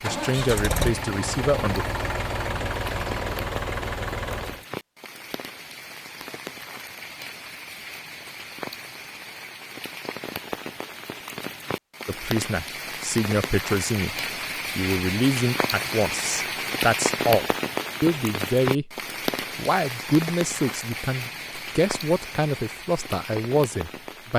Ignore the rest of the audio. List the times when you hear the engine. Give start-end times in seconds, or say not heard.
0.0-4.7.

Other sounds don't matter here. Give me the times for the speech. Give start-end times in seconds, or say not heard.
0.0-1.9, 12.1-14.2, 14.8-18.9, 19.6-24.3.